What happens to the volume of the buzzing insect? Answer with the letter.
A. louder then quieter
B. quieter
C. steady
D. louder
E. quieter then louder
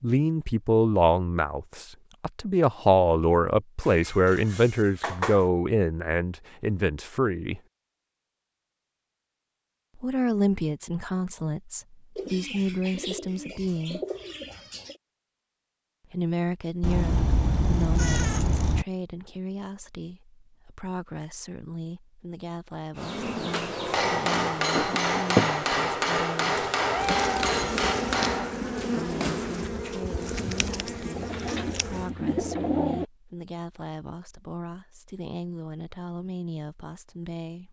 A.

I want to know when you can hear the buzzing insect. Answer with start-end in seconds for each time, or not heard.
22.9-32.1.